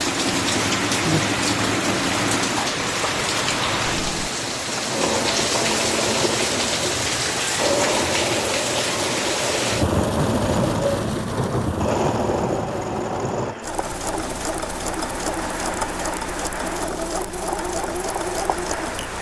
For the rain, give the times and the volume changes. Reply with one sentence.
The rain can be heard from 0.0 to 19.1 s, getting quieter.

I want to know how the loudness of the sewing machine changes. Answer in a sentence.
The loudness of the sewing machine stays about the same.